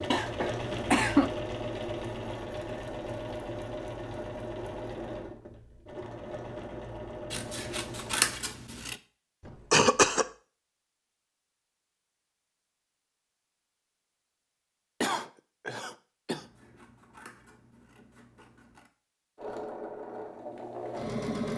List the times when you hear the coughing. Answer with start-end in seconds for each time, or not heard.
0.1-1.3, 9.4-10.2, 15.0-16.4.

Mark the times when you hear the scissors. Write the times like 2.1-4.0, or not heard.
7.3-9.0, 16.3-18.9.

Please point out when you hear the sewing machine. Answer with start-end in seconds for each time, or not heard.
0.0-8.4, 19.4-21.5.